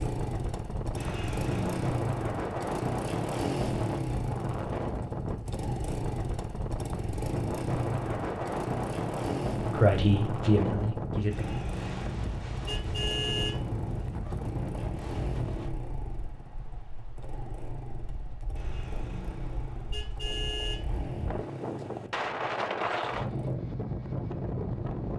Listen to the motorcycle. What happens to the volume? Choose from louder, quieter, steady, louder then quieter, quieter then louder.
quieter.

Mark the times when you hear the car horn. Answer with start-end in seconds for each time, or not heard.
0.9-1.9, 11.3-13.8, 18.6-21.0.